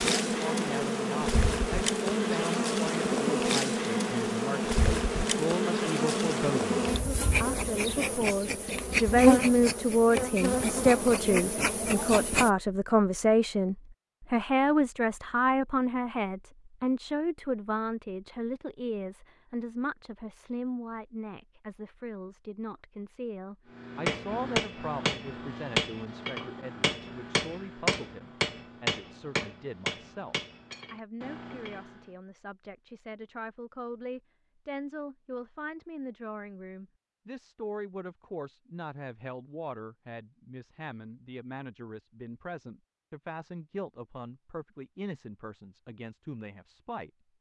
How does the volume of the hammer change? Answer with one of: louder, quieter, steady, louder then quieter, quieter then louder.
quieter.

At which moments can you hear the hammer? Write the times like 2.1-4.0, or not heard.
23.7-32.1.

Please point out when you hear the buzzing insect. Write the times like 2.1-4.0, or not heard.
0.0-12.5.